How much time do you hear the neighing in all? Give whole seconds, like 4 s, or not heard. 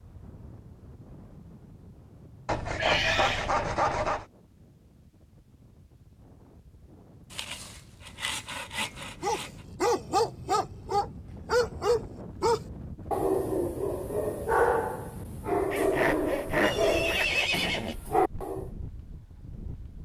2 s.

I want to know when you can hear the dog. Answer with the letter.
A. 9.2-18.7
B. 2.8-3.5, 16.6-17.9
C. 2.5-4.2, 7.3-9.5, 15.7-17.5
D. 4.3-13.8
A.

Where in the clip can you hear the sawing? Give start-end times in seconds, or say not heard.
2.5-4.2, 7.3-9.5, 15.7-17.5.